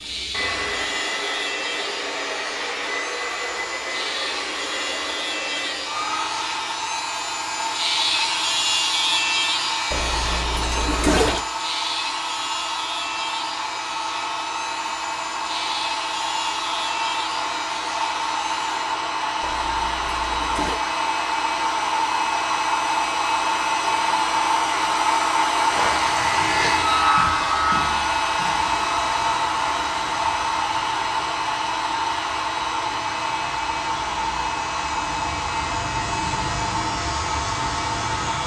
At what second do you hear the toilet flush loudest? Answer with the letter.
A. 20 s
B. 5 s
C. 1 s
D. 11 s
D.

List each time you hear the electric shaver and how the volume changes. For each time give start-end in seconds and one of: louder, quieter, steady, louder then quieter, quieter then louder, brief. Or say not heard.
0.0-18.7 louder then quieter
25.6-38.4 quieter then louder.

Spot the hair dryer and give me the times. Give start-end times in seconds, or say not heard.
0.0-38.4.